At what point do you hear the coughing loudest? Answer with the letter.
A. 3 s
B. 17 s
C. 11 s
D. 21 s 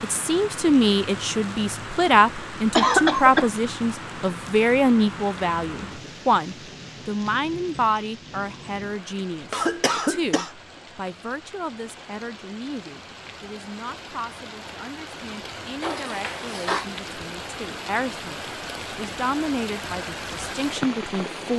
A.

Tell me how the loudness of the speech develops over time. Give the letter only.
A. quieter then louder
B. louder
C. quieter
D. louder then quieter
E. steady
A.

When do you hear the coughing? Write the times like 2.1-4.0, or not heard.
2.8-3.5, 9.5-10.5, 15.8-16.9.